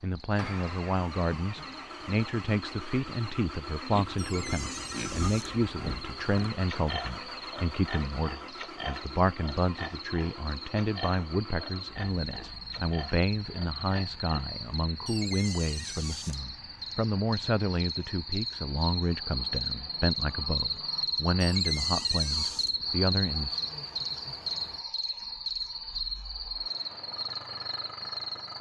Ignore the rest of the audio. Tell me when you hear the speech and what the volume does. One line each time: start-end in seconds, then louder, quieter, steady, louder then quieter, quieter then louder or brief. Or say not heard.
0.0-23.6 steady.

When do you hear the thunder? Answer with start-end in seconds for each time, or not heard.
not heard.